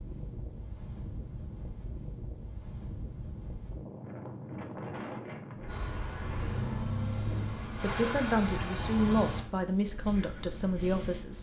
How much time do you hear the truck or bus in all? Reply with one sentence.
The truck or bus can be heard for 4 seconds in total.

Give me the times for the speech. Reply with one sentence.
You can hear the speech from 7.8 to 11.3 s.